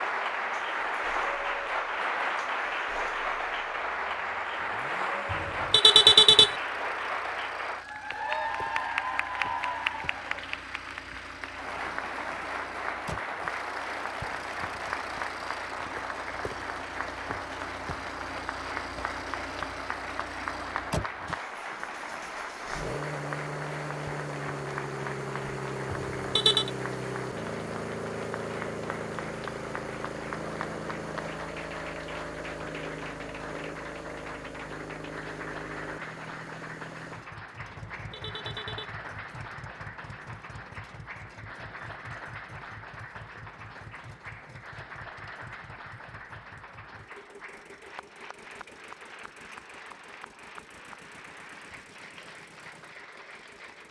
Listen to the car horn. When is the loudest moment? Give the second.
6 s.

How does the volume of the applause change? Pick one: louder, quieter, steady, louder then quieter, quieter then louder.
quieter.